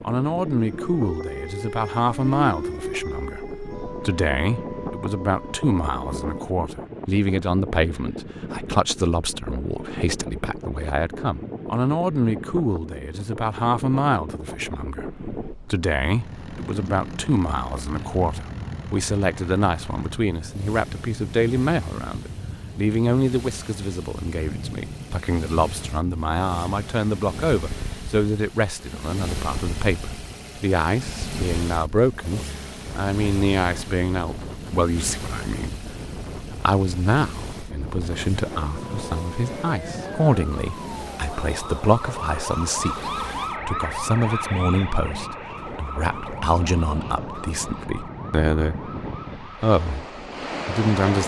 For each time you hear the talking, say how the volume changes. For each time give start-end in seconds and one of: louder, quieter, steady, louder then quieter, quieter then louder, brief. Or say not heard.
0.0-51.2 steady.